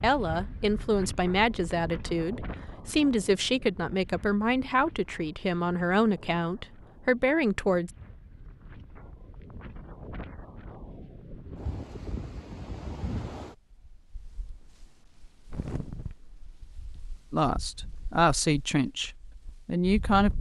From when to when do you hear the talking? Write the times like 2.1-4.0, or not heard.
0.0-7.9, 17.3-20.3.